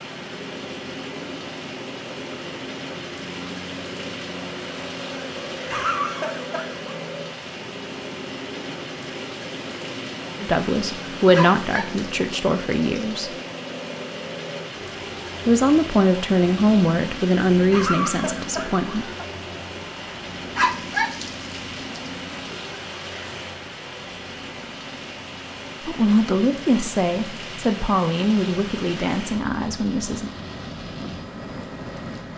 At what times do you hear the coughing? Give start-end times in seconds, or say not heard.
5.7-7.0, 17.7-19.1.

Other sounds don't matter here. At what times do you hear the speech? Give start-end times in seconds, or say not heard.
10.4-13.3, 15.4-19.1, 25.8-30.3.